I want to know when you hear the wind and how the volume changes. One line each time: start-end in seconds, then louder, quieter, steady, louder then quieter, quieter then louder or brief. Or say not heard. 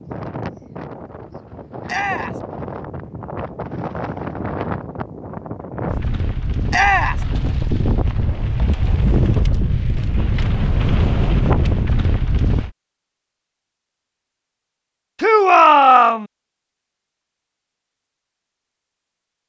0.0-12.7 louder.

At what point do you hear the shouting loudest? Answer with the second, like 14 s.
16 s.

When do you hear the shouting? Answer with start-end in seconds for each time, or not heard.
1.9-2.4, 6.7-7.2, 15.2-16.2.